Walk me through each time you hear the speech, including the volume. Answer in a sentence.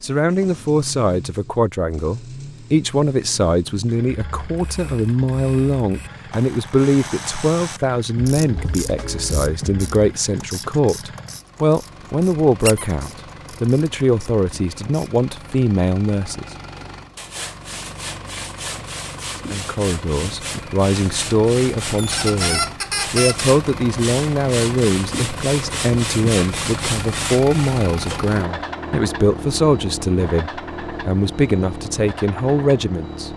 You can hear the speech from 0.0 to 16.4 s, at a steady volume; and from 19.5 to 33.3 s, at a steady volume.